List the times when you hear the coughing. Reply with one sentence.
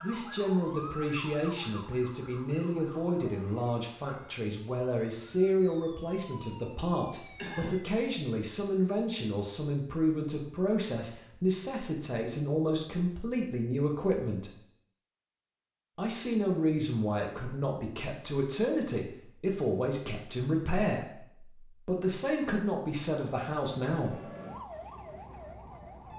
You can hear the coughing from 7.3 to 7.8 s.